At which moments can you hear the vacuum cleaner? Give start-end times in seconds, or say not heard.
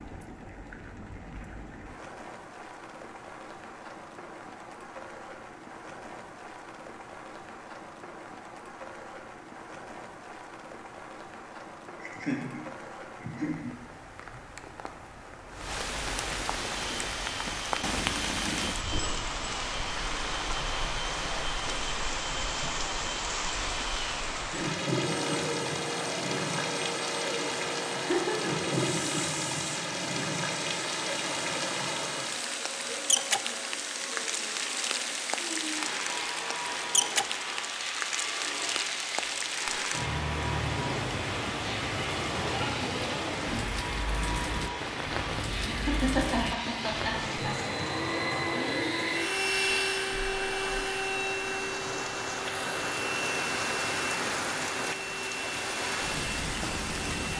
16.5-57.3.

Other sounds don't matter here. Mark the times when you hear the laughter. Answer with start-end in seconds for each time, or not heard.
11.9-14.4, 27.9-28.7, 45.6-47.7.